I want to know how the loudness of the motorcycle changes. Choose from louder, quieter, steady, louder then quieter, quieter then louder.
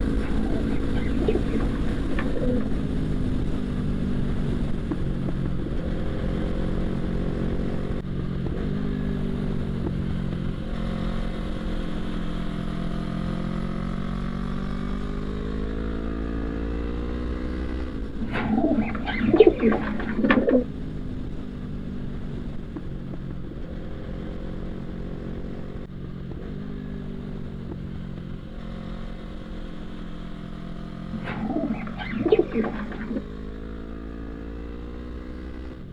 quieter.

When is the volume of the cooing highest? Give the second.
20 s.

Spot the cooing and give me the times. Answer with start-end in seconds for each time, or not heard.
0.1-2.9, 18.2-20.6, 31.1-33.2.